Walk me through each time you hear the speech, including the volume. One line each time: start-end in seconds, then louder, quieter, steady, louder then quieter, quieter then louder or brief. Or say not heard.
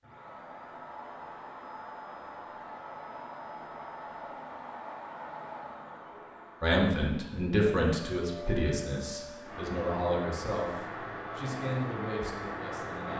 6.6-13.1 quieter.